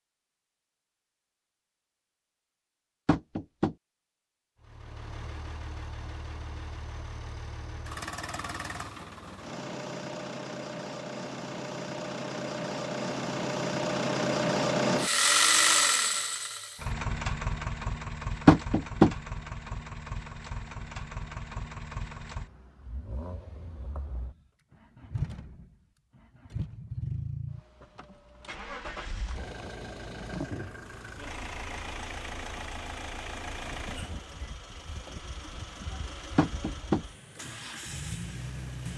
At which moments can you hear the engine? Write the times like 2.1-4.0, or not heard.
4.6-38.9.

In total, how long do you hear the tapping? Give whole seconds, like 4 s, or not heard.
2 s.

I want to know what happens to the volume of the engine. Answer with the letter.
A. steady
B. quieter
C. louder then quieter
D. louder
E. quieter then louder
C.